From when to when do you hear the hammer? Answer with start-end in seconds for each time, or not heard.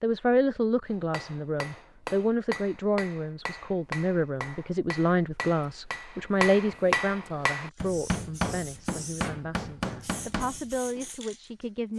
0.9-11.1.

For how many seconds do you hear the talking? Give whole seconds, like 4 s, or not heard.
12 s.